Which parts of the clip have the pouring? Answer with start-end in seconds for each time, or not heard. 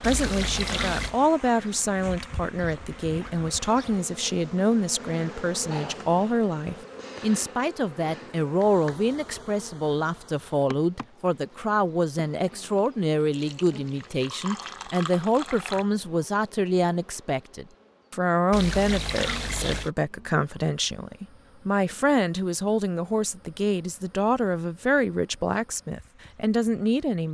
0.0-1.1, 13.3-15.8, 18.5-19.9.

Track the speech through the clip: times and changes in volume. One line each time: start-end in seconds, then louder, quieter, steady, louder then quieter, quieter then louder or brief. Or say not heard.
0.0-27.2 steady.